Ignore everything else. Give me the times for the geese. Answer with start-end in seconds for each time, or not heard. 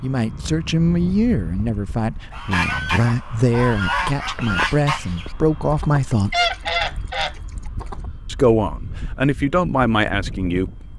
2.3-8.1.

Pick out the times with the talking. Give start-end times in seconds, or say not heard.
0.0-6.5, 8.2-10.9.